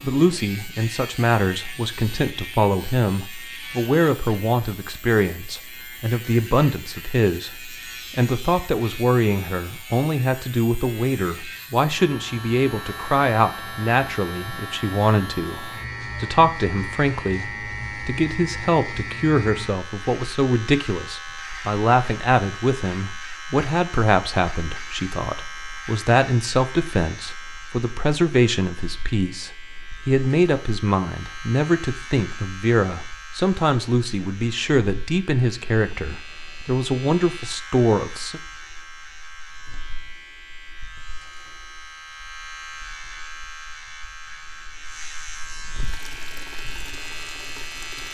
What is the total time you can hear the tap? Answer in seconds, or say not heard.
2 s.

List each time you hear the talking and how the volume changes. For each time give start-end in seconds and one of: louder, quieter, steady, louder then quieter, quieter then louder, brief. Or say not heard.
0.0-38.4 steady.